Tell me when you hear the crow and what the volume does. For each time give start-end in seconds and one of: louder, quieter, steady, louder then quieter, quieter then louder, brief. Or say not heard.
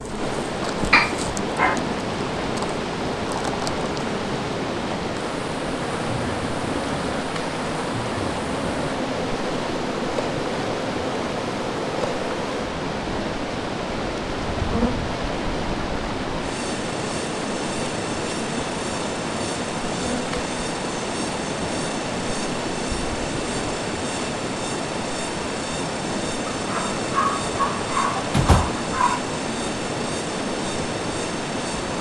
not heard.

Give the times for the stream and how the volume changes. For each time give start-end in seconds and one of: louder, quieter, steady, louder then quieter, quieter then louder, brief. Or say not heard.
0.0-31.9 steady.